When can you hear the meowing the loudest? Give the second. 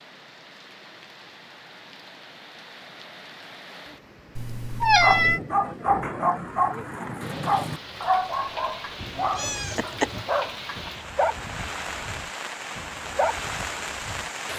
5 s.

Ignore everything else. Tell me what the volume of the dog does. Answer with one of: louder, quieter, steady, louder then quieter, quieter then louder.
quieter.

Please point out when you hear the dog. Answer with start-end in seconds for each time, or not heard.
5.0-14.3.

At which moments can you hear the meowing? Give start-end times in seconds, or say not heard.
4.3-5.4, 9.0-10.2.